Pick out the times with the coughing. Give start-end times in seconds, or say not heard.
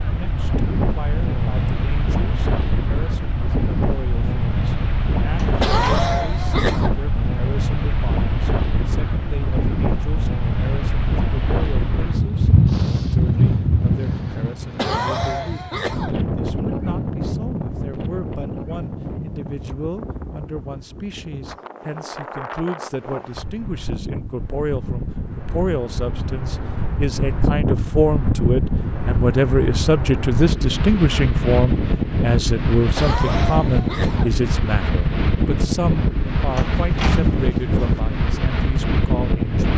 5.6-6.9, 14.8-16.2, 33.0-34.4.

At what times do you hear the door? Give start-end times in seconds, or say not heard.
5.3-6.2, 36.5-38.0.